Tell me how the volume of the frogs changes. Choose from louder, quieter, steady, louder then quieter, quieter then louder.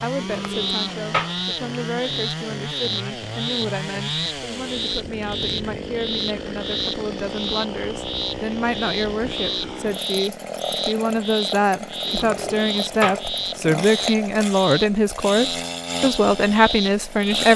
steady.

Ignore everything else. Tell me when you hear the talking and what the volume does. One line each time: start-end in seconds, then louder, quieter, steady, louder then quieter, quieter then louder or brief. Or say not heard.
0.0-17.5 louder.